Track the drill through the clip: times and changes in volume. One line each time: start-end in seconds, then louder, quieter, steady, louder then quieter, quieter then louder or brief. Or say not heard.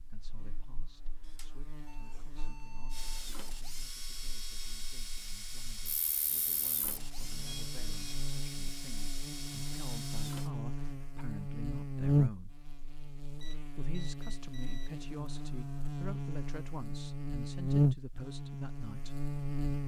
2.9-10.5 steady.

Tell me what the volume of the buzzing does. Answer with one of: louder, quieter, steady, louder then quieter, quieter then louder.
louder.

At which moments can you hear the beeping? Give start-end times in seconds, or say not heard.
1.2-3.2, 7.2-8.3, 13.4-14.9.